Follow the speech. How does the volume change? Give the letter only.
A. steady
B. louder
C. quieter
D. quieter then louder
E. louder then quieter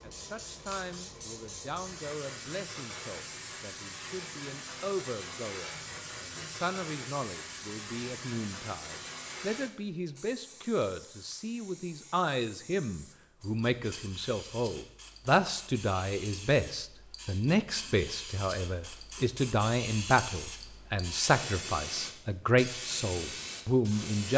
B.